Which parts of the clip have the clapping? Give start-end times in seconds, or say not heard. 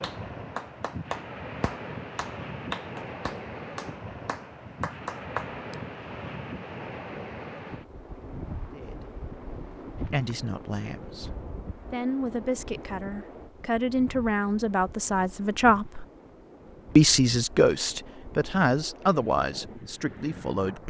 0.0-5.8.